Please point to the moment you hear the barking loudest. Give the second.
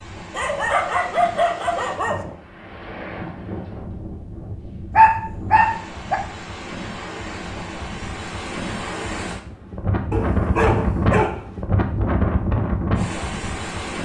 5 s.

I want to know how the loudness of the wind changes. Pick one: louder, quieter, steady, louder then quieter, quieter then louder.
louder.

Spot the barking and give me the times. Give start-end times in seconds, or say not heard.
0.3-2.2, 5.0-6.2, 10.1-11.4.